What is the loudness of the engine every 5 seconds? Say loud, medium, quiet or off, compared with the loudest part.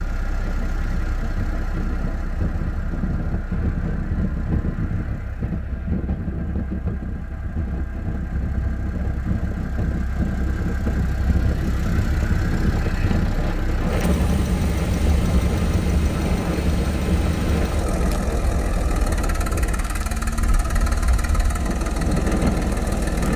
medium, quiet, loud, loud, loud.